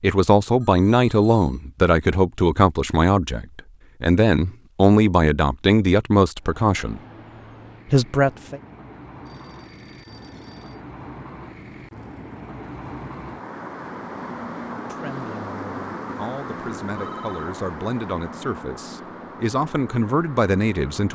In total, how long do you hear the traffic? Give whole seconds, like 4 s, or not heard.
15 s.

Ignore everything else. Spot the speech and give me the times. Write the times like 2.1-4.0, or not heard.
0.0-7.0, 7.8-8.6, 14.7-21.1.